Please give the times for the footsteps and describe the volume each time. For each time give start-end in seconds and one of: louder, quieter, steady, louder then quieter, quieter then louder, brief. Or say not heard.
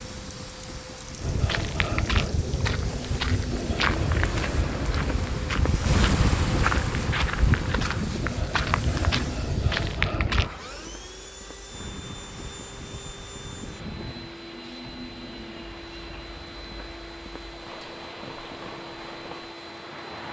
1.2-10.5 steady.